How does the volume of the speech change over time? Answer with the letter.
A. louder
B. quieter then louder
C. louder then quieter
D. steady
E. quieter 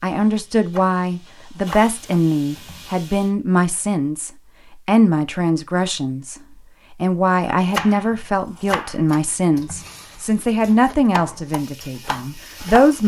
D.